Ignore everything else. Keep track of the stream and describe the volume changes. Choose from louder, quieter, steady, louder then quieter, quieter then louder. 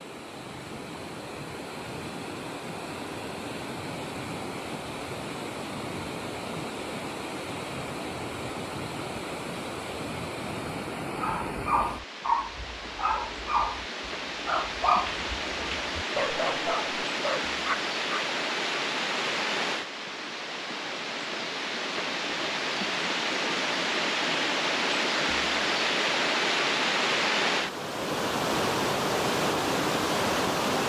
louder.